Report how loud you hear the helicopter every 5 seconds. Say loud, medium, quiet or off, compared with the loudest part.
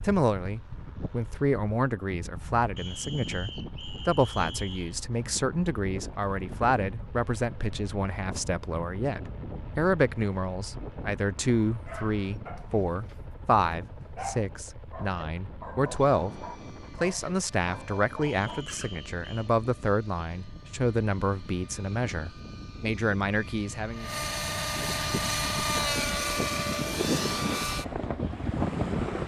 quiet, quiet, quiet, quiet, medium, loud.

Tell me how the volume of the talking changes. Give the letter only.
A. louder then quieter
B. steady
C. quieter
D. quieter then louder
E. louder
B.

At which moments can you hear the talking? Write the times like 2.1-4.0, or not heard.
0.0-24.1.